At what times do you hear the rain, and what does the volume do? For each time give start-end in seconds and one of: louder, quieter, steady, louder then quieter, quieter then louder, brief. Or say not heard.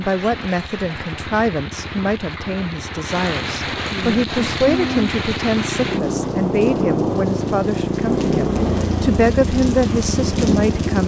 0.0-11.0 louder.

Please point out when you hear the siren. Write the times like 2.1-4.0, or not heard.
not heard.